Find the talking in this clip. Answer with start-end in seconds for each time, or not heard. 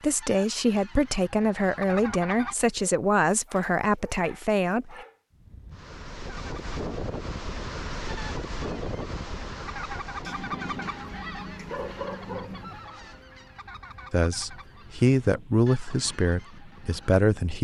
0.0-5.0, 14.1-17.6.